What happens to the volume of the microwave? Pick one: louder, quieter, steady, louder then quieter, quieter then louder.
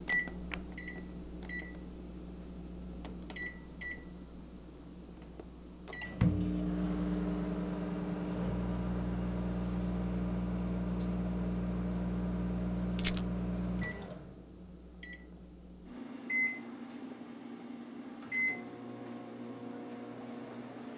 louder then quieter.